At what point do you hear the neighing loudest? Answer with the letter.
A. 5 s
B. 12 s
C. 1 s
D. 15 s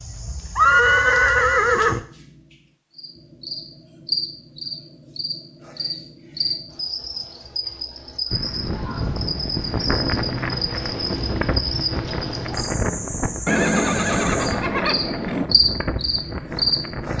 C.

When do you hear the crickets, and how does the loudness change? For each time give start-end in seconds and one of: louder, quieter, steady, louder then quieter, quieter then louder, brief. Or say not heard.
0.0-17.1 louder.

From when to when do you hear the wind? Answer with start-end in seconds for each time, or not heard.
8.3-17.1.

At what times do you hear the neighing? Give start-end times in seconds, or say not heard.
0.6-2.0, 13.4-15.4.